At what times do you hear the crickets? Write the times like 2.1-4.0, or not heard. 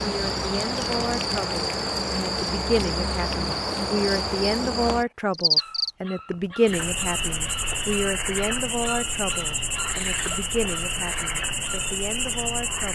0.0-12.8.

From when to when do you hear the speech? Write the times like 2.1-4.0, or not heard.
0.0-12.8.